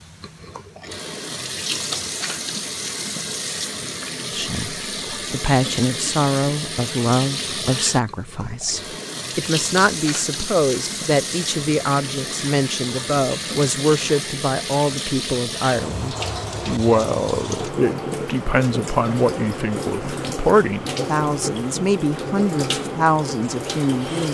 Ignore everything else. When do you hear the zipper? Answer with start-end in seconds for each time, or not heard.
not heard.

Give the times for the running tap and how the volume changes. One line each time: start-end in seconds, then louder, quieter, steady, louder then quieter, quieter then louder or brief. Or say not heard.
0.0-24.3 steady.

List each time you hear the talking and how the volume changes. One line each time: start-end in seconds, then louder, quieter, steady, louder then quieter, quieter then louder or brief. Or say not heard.
4.3-24.3 steady.